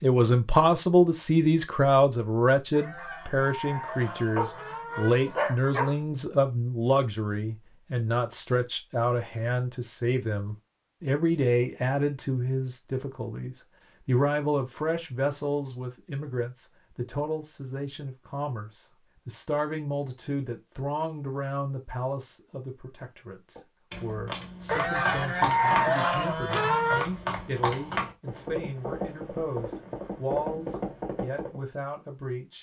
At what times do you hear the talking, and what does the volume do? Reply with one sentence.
The talking can be heard from 0.0 to 32.5 s, getting quieter.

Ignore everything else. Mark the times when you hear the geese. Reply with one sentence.
You can hear the geese from 2.7 to 5.5 s and from 24.6 to 27.1 s.